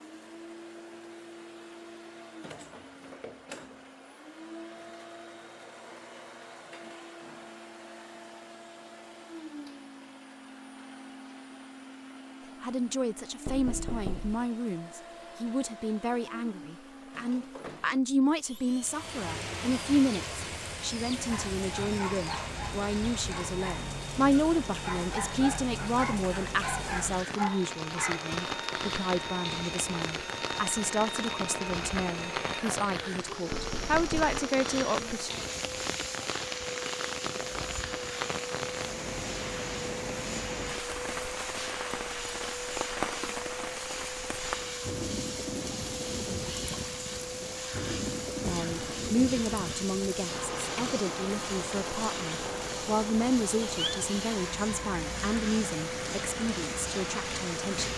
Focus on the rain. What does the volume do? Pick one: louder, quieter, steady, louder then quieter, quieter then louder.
steady.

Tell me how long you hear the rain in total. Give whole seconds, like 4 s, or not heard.
39 s.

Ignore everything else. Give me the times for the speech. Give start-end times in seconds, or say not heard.
12.6-35.3, 48.4-57.9.